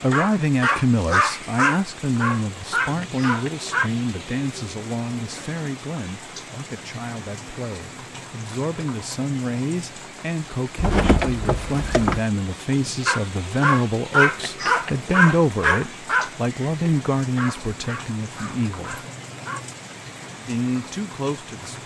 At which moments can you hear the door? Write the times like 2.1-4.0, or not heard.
10.8-12.2.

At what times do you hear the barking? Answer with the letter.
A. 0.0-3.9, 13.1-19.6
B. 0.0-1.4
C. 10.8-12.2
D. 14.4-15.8
A.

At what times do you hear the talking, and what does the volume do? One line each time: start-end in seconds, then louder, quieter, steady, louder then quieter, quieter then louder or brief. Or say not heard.
0.0-19.0 quieter then louder
20.4-21.8 brief.